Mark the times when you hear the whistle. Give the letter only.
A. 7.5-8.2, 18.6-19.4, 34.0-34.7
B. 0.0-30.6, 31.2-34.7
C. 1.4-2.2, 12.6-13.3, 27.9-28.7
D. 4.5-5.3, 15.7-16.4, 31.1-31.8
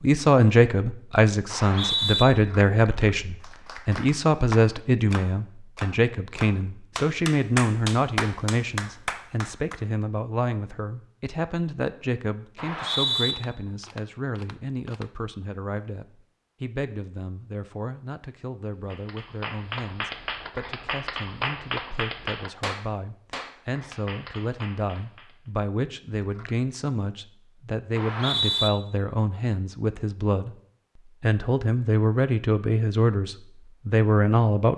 C.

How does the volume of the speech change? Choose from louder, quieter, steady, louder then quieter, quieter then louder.
quieter then louder.